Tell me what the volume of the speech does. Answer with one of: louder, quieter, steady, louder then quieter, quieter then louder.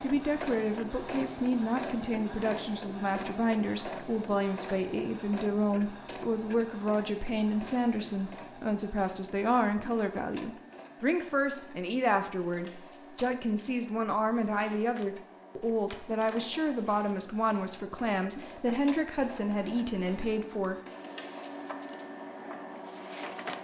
steady.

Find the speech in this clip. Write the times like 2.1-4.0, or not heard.
0.0-20.8.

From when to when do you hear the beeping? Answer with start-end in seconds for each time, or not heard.
not heard.